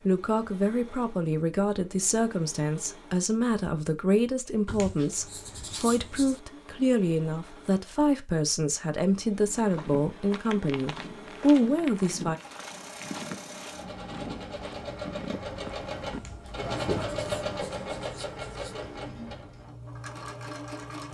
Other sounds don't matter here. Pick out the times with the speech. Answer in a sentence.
You can hear the speech from 0.1 to 12.3 s.